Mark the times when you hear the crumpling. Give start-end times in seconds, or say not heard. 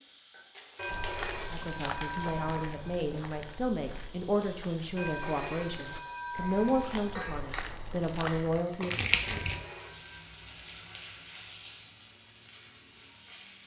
0.6-2.5, 8.8-9.6.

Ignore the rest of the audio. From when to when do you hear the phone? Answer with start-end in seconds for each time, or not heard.
0.8-3.0, 5.0-7.0, 9.2-10.2.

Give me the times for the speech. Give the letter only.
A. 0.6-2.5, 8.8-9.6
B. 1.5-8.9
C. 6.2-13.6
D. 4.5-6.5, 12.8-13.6
B.